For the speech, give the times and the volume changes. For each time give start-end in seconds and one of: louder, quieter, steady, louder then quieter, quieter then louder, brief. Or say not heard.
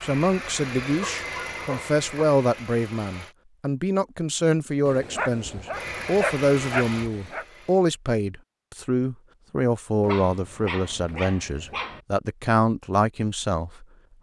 0.0-13.8 steady.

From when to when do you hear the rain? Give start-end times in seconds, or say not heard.
not heard.